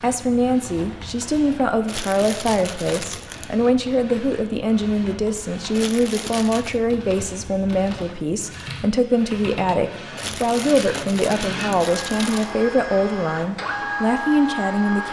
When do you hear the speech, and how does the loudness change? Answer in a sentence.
You can hear the speech from 0.0 to 15.0 s, at a steady volume.